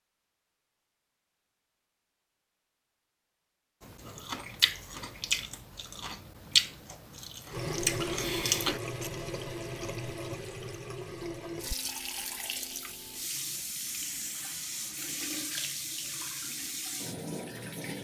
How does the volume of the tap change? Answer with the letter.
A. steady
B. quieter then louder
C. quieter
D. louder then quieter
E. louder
A.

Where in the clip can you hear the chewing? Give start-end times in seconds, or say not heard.
3.8-9.1.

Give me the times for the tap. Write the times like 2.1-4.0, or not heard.
7.5-17.9.